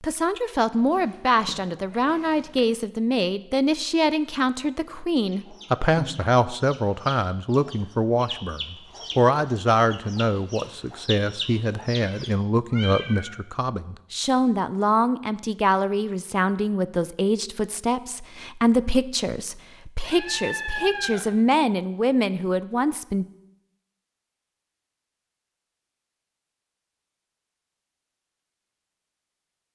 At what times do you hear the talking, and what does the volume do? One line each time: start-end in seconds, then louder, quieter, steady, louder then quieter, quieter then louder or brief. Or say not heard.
0.0-23.2 steady.